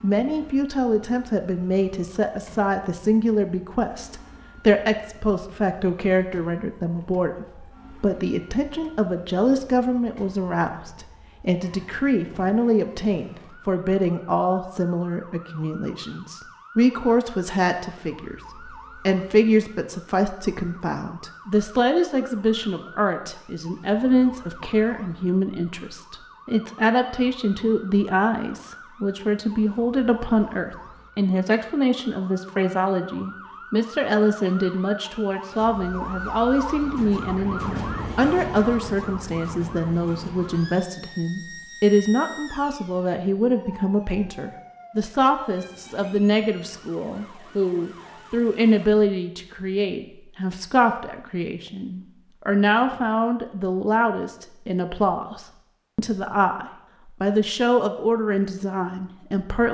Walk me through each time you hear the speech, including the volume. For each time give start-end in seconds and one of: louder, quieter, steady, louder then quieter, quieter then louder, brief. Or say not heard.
0.0-59.6 steady.